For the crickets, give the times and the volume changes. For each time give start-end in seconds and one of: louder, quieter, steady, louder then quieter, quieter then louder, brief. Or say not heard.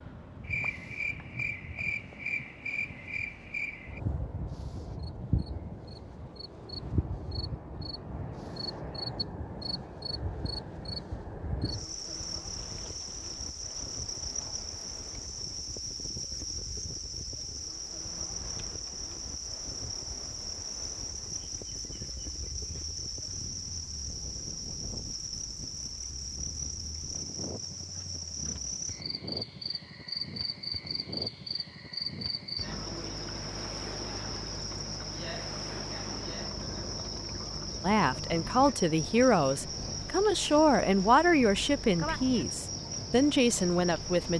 0.0-44.3 steady.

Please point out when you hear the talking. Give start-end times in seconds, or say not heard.
37.8-44.3.